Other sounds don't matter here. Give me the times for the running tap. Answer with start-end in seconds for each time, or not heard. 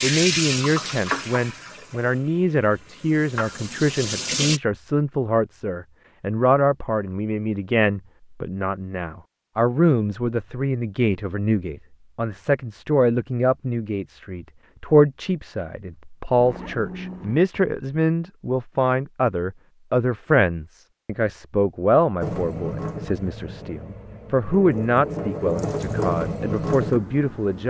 0.0-4.6, 22.2-27.6.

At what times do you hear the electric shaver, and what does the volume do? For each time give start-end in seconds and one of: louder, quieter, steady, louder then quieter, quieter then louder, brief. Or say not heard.
not heard.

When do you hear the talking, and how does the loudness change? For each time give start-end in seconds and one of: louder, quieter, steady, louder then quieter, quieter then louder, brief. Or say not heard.
0.0-27.6 steady.